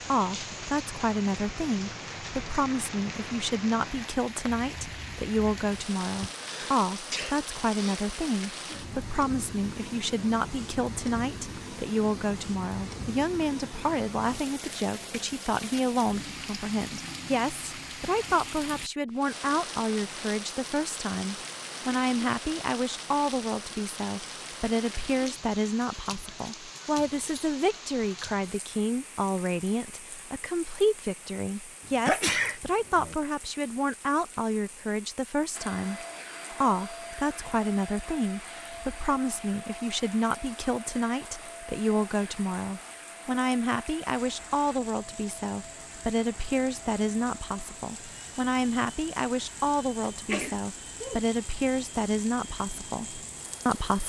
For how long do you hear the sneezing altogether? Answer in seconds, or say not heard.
4 s.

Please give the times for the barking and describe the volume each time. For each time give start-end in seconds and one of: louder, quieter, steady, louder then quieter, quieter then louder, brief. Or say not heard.
not heard.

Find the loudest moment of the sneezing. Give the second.
32 s.